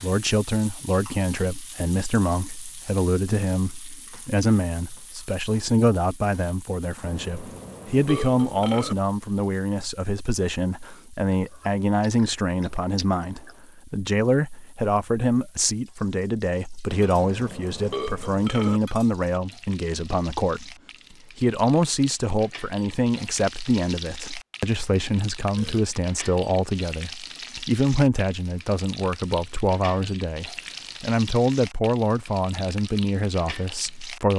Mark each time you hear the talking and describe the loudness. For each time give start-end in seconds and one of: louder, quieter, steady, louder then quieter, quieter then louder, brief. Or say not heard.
0.0-20.8 steady
21.4-34.3 steady.